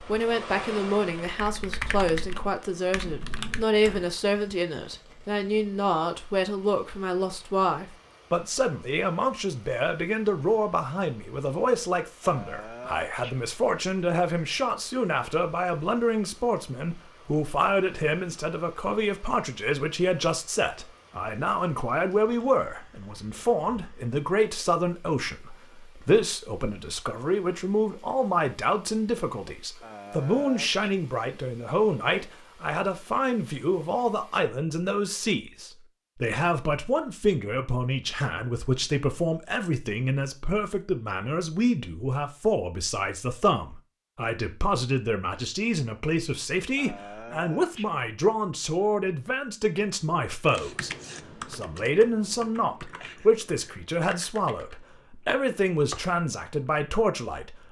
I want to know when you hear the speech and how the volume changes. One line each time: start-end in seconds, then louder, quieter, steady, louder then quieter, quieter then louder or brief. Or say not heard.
0.0-57.6 steady.